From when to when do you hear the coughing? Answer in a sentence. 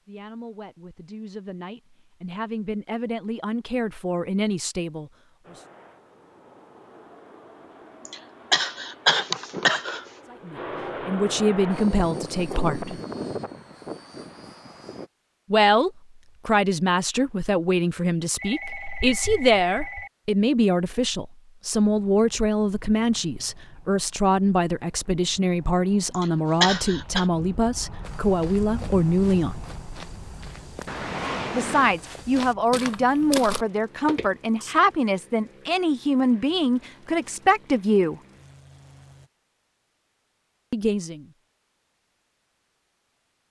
The coughing can be heard from 8.1 to 10.1 s and from 26.1 to 27.2 s.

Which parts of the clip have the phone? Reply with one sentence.
The phone can be heard from 18.4 to 20.1 s and from 30.9 to 31.9 s.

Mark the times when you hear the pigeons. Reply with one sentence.
The pigeons can't be heard in this clip.